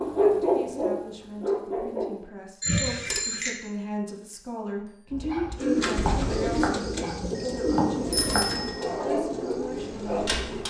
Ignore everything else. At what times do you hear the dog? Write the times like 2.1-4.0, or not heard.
0.0-2.1, 5.1-10.6.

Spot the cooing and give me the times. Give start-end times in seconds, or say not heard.
5.5-10.6.